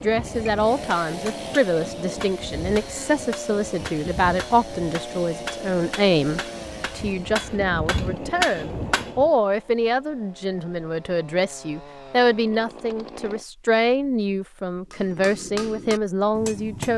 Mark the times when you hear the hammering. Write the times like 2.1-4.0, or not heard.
0.0-9.3, 14.9-16.9.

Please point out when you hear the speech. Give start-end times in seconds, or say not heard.
0.0-16.9.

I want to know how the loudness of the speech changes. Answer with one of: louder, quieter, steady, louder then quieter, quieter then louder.
steady.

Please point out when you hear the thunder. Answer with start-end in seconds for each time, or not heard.
not heard.